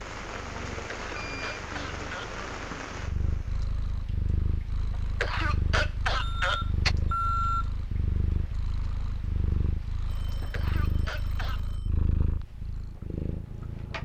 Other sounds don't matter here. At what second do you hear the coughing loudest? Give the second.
6 s.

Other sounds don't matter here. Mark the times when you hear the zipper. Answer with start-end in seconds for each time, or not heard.
not heard.